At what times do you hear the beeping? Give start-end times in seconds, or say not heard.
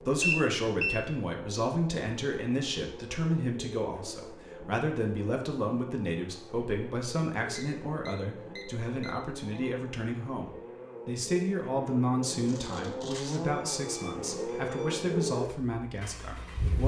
0.2-1.1, 7.5-9.4, 12.4-15.1.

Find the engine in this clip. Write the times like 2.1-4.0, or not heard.
0.0-16.8.